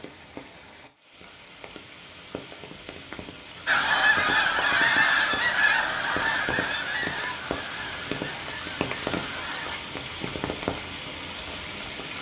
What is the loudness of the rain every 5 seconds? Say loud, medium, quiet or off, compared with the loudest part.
medium, loud, loud.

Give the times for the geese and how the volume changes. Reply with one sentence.
The geese can be heard from 3.6 to 9.8 s, getting quieter.